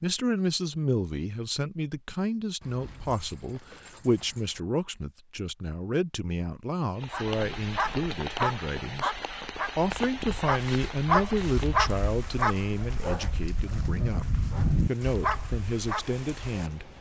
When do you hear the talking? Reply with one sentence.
You can hear the talking from 0.0 to 9.2 s and from 9.8 to 16.9 s.